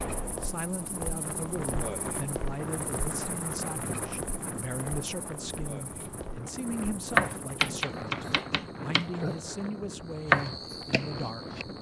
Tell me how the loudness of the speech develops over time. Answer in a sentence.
The loudness of the speech stays about the same.